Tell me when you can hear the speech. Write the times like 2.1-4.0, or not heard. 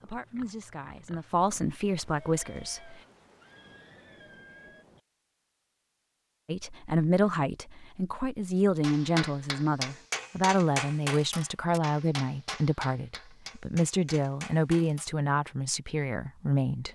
0.0-3.0, 6.5-16.9.